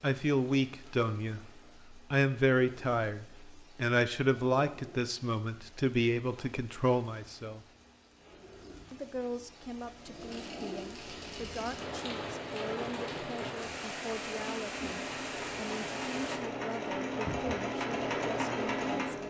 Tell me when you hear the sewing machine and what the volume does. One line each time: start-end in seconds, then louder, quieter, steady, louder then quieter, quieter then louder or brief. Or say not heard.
10.2-19.2 louder.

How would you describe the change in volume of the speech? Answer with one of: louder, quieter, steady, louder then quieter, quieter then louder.
quieter.